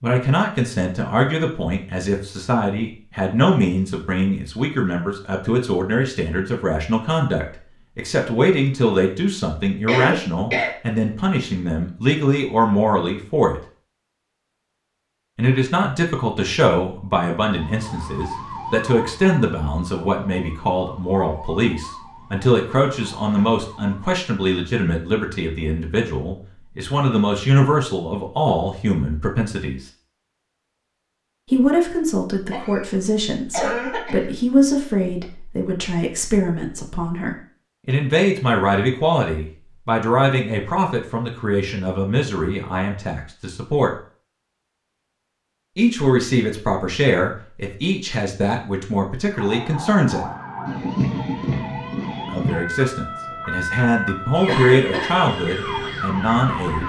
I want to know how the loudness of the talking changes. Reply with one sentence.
The loudness of the talking stays about the same.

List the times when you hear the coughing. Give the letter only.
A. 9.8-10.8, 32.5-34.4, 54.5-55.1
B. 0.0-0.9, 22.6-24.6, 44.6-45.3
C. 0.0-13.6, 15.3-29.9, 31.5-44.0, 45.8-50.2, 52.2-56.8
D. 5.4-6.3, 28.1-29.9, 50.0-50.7
A.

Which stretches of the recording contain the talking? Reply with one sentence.
You can hear the talking from 0.0 to 13.6 s, from 15.3 to 29.9 s, from 31.5 to 44.0 s, from 45.8 to 50.2 s and from 52.2 to 56.8 s.